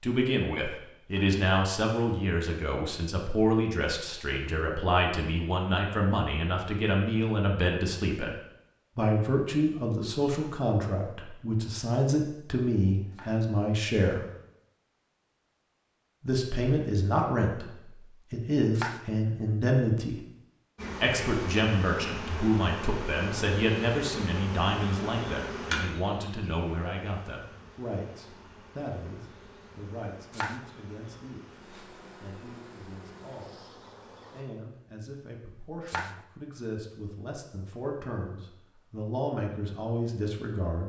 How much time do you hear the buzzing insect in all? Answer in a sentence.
You can hear the buzzing insect for 14 seconds altogether.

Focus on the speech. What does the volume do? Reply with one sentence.
The volume of the speech goes down.